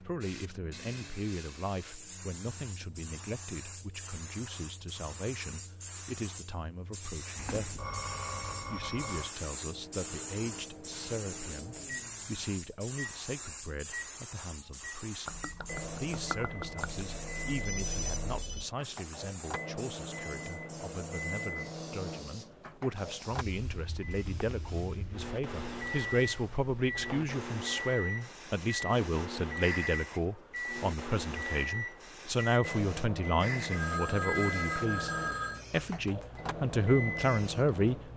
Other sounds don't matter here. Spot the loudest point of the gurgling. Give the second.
16 s.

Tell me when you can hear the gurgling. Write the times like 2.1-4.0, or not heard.
15.2-17.1.